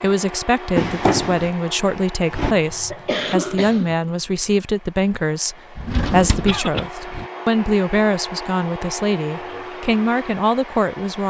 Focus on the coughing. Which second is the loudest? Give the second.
3 s.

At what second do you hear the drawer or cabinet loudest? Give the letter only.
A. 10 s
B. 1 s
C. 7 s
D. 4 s
B.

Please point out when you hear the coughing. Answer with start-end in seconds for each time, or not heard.
2.5-4.0, 6.5-6.9.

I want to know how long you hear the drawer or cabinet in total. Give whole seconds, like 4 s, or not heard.
3 s.